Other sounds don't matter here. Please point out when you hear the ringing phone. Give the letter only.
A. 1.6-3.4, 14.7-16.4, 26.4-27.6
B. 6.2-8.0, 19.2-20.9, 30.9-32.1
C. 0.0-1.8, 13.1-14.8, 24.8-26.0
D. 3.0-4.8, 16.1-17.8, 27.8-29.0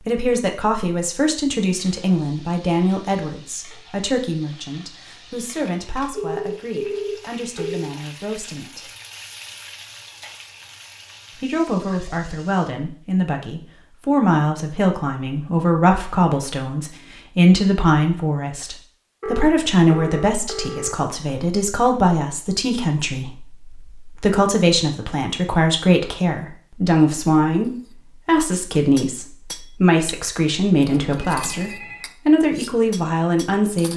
B.